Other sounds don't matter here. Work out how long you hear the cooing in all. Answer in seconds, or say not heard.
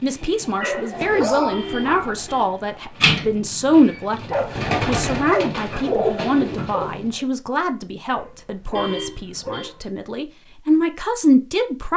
7 s.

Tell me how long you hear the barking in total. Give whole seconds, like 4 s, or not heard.
5 s.